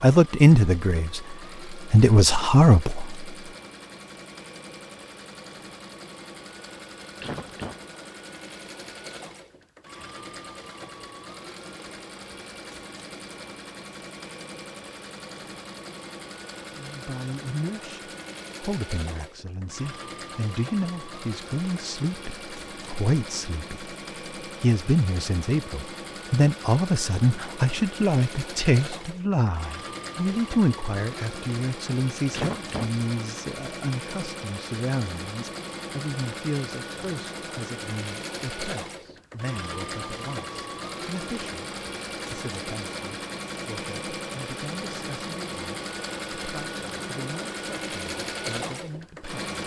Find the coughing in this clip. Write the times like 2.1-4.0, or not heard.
7.2-7.8, 32.3-32.9.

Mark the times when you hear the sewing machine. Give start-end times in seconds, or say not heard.
0.1-49.6.